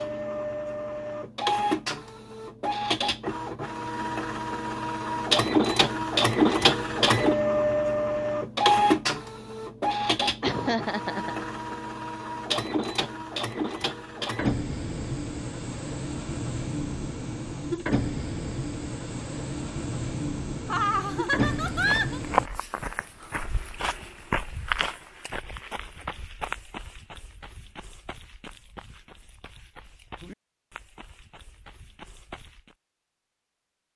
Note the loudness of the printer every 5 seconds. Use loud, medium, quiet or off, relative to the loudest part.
medium, loud, medium, medium, medium, off, off.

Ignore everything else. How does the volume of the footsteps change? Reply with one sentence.
The volume of the footsteps goes down.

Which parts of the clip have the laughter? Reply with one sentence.
You can hear the laughter from 10.4 to 11.4 s and from 20.6 to 22.2 s.